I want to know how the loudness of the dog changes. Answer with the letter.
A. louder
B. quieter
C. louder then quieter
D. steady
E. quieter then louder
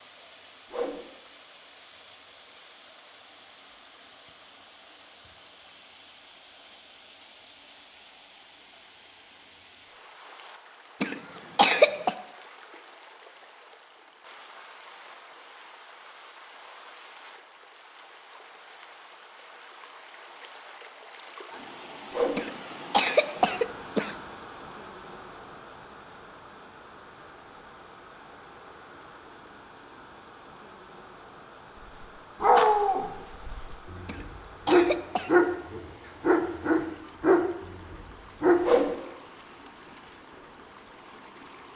D.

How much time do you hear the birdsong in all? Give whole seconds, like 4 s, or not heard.
not heard.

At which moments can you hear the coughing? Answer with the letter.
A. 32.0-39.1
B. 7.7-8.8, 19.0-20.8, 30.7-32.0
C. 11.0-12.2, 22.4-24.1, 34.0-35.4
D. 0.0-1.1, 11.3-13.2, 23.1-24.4
C.